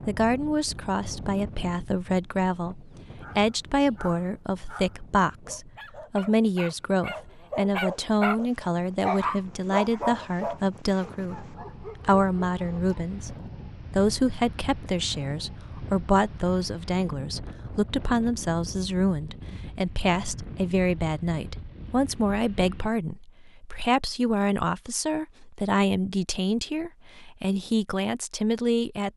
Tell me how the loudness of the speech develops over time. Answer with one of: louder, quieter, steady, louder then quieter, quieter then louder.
steady.